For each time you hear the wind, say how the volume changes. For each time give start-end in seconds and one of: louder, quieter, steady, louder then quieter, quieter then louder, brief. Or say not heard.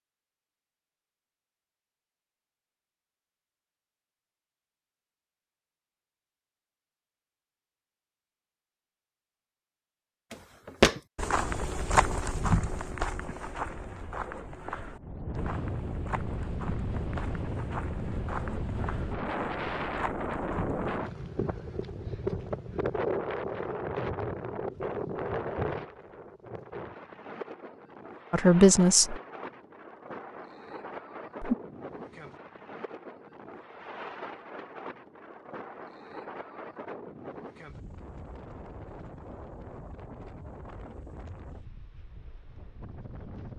14.9-43.5 quieter.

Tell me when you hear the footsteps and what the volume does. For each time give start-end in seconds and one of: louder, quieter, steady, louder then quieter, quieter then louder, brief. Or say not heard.
10.3-21.0 quieter.